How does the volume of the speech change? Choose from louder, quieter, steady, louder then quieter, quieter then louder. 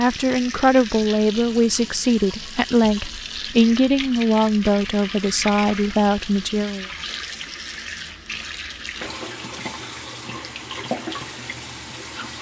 steady.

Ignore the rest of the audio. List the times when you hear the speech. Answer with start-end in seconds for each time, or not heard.
0.0-6.8.